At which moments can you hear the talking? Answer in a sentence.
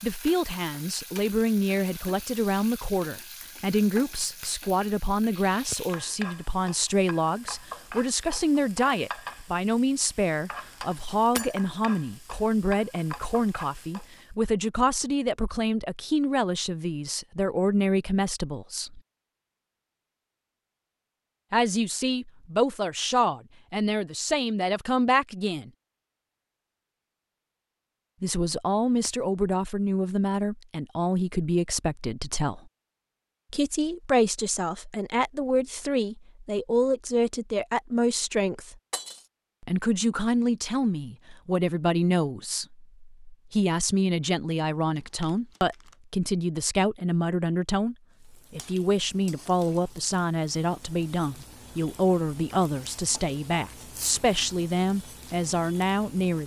You can hear the talking from 0.0 to 19.0 s, from 21.5 to 25.7 s, from 28.2 to 32.7 s, from 33.5 to 38.8 s and from 39.6 to 56.4 s.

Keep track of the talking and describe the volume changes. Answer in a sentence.
The loudness of the talking stays about the same.